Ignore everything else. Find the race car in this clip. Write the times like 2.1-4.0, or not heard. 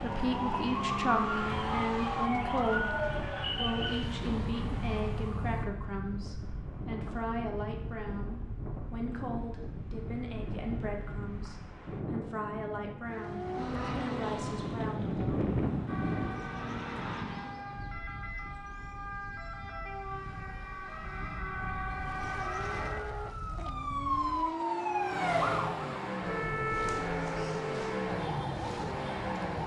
0.0-5.3, 13.1-17.7, 21.9-29.6.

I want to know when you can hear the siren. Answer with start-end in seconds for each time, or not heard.
0.0-5.7, 15.8-29.6.